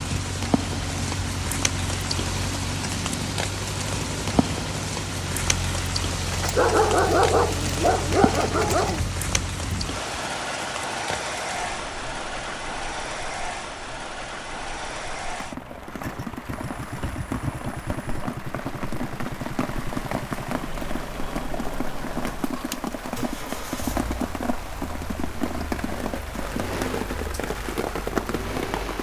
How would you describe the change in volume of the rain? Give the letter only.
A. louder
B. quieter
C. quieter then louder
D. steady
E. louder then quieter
C.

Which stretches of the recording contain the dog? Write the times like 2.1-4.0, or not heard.
6.3-9.1, 16.8-18.4.